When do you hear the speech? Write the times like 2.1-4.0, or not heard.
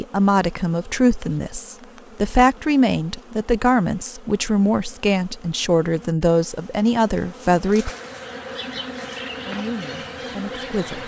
0.0-7.9, 9.4-11.0.